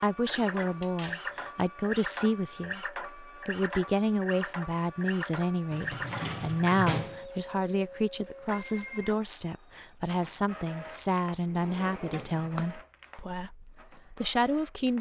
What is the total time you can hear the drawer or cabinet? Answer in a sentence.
You can hear the drawer or cabinet for 4 seconds altogether.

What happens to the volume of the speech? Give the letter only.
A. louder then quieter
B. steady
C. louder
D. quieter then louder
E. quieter
B.